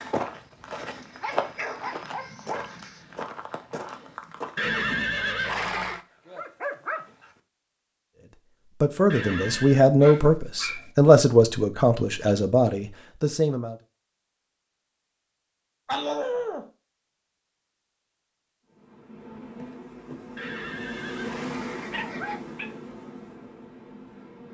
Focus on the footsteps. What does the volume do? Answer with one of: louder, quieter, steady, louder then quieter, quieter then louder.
louder then quieter.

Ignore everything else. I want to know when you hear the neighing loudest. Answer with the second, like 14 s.
5 s.